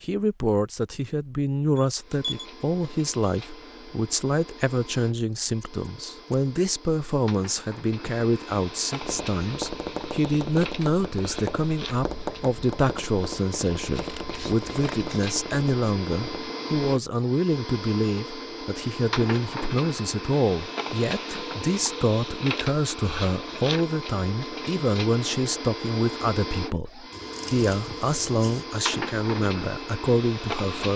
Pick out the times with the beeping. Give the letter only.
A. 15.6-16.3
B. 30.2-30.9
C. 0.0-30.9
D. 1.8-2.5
D.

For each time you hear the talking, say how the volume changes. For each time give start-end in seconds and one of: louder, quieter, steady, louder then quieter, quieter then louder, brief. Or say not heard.
0.0-30.9 steady.